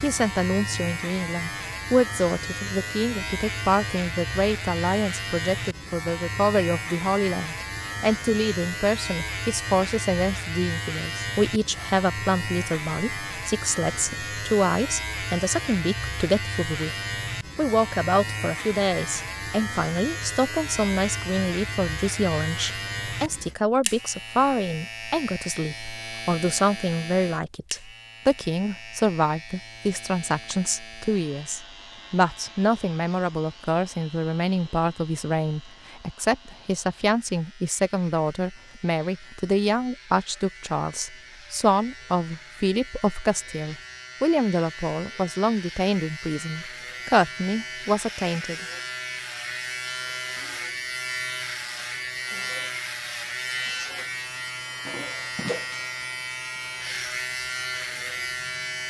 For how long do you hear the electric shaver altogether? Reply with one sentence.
The electric shaver can be heard for 59 seconds in total.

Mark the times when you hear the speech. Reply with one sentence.
You can hear the speech from 0.0 to 16.9 s and from 17.6 to 48.6 s.